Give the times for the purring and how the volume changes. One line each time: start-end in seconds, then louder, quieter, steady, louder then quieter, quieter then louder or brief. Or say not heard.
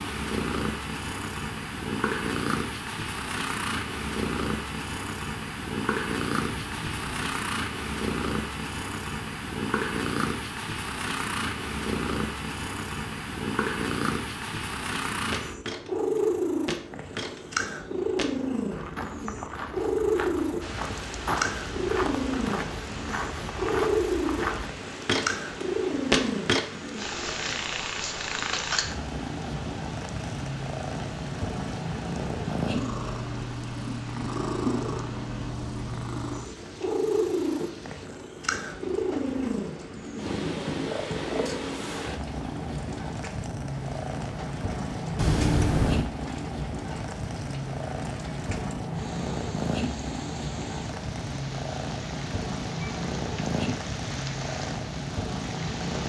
0.0-56.0 steady.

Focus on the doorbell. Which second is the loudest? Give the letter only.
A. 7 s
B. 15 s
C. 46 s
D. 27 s
C.